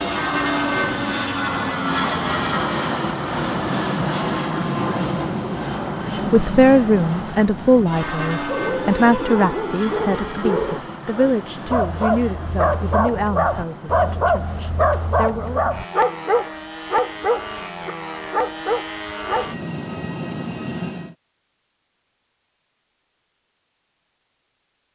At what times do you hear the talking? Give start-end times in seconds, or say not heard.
6.3-15.8.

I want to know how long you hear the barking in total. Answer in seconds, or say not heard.
11 s.